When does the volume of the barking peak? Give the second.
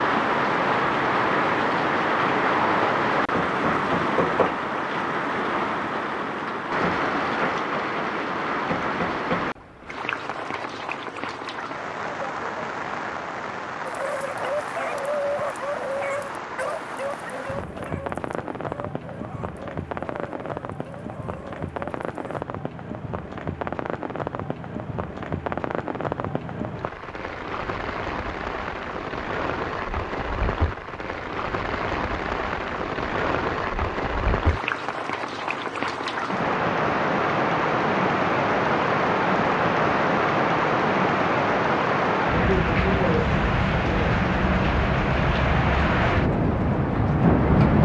15 s.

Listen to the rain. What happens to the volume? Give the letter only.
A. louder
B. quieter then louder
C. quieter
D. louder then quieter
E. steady
B.